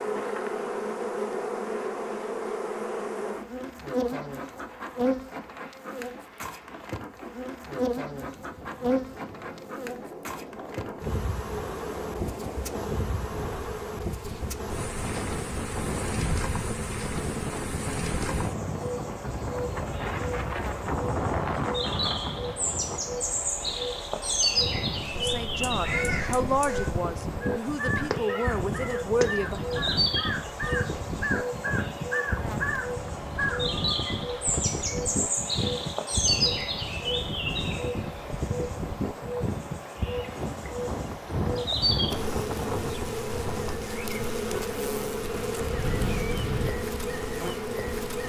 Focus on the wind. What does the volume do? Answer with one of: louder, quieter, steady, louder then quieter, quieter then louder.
louder.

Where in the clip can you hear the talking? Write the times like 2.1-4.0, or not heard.
25.1-29.6.